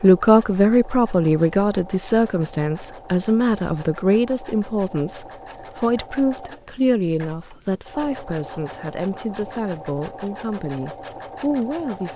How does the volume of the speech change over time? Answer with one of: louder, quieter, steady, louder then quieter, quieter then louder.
quieter.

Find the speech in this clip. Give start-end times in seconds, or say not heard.
0.0-12.1.